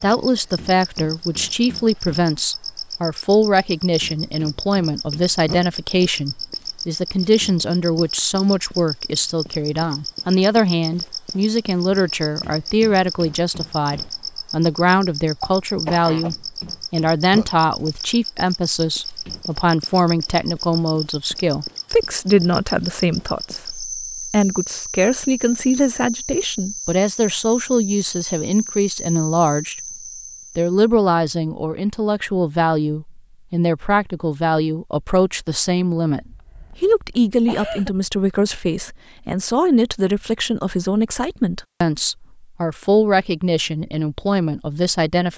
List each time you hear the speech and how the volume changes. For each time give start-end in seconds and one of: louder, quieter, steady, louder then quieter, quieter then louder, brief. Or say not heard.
0.0-29.8 steady
30.6-45.3 steady.